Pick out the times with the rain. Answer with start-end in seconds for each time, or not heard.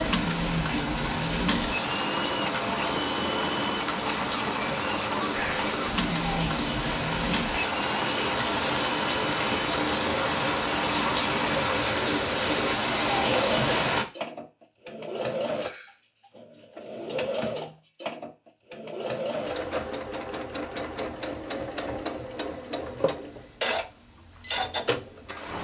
0.0-14.1.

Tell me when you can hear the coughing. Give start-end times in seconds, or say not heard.
5.3-5.7.